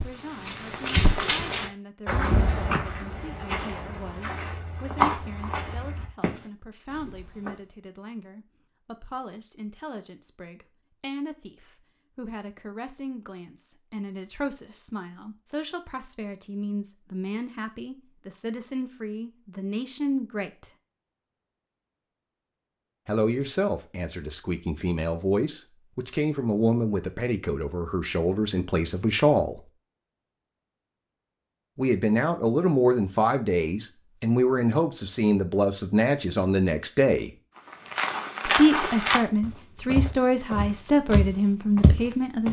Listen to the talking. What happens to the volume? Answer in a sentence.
The volume of the talking goes up.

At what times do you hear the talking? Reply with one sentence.
The talking can be heard from 0.0 to 20.7 s, from 23.1 to 29.6 s, from 31.8 to 37.3 s and from 38.5 to 42.4 s.